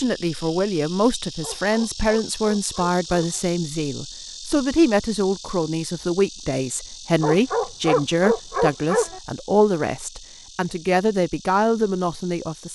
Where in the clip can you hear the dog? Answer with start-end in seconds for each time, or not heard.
1.4-3.4, 7.2-9.2.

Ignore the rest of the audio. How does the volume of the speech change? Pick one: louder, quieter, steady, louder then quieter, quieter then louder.
steady.